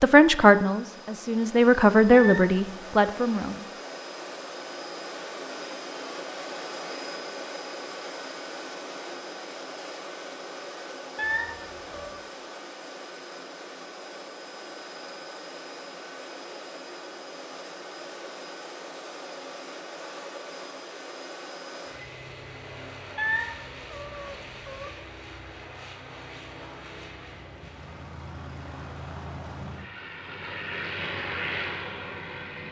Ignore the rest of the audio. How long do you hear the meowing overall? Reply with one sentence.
You can hear the meowing for 3 seconds altogether.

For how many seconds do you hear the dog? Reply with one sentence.
The dog can't be heard in this clip.